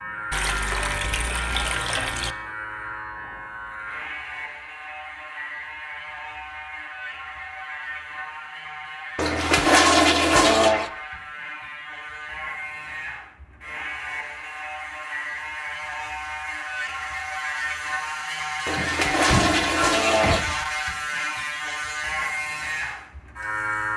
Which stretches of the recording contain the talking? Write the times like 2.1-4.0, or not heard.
not heard.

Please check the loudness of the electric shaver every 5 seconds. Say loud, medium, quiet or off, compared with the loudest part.
medium, medium, medium, loud, loud.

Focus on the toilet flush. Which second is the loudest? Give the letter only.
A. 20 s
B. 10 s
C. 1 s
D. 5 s
B.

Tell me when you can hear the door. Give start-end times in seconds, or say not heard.
18.8-20.6.